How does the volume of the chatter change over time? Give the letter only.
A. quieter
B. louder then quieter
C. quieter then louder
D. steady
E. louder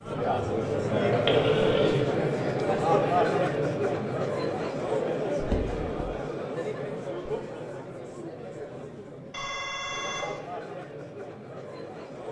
A.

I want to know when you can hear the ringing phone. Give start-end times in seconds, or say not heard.
1.2-2.1, 5.4-6.1, 9.3-10.4.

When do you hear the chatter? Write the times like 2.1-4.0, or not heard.
0.0-12.2.